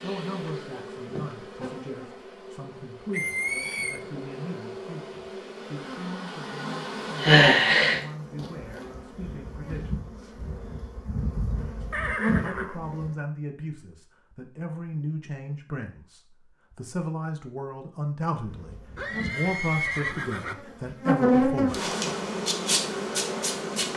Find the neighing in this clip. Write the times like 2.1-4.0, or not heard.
3.1-4.0, 11.9-12.8, 18.9-20.6.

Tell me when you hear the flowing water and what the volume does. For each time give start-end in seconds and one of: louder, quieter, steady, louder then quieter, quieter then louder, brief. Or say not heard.
not heard.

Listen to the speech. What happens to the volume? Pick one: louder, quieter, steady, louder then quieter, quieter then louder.
louder.